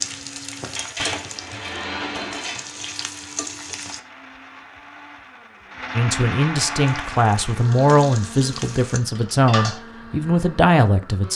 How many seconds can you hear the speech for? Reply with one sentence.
The speech can be heard for 5 seconds in total.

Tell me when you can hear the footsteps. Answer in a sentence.
You can't hear the footsteps here.